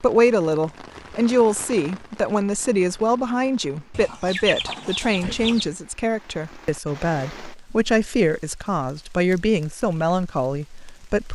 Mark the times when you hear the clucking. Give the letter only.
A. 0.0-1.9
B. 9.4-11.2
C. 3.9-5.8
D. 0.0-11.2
C.